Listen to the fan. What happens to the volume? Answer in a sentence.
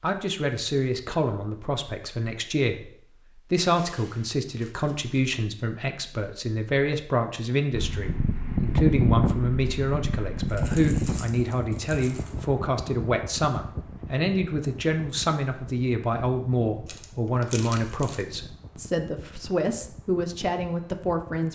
The loudness of the fan goes down.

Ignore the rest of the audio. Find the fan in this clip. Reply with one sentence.
You can hear the fan from 7.7 to 21.5 s.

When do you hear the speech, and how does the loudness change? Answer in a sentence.
You can hear the speech from 0.0 to 21.5 s, at a steady volume.